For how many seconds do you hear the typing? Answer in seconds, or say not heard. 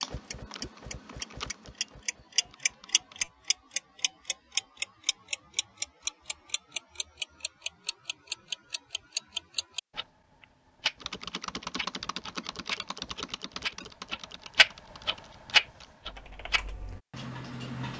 9 s.